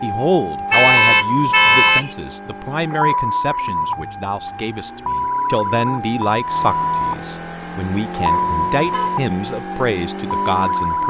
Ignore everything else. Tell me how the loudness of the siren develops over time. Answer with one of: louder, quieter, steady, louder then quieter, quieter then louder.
steady.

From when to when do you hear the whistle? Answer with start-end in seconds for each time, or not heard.
not heard.